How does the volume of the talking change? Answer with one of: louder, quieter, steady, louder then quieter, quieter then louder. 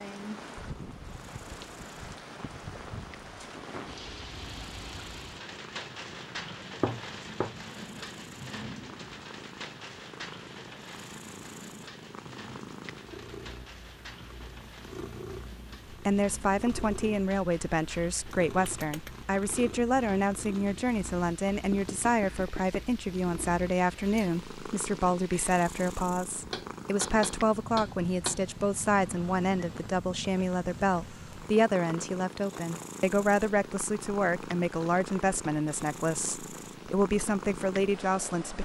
steady.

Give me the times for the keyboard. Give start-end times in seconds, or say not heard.
not heard.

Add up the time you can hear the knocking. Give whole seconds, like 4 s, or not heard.
4 s.